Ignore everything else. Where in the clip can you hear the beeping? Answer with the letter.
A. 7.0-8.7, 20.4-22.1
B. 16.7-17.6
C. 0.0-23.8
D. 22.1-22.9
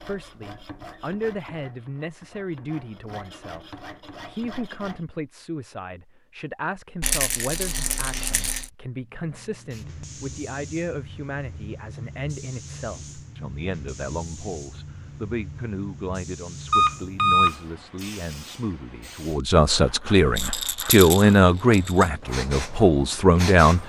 B.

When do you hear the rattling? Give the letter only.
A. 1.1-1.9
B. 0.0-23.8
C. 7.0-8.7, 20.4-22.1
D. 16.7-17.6
C.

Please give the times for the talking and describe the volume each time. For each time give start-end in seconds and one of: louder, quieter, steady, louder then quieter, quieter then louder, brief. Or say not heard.
0.0-23.8 louder.